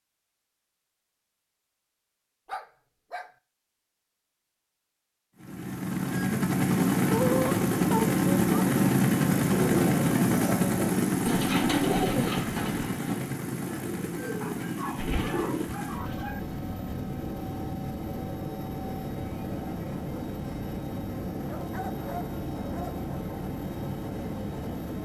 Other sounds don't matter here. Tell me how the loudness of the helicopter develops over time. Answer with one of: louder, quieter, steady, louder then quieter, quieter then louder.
quieter.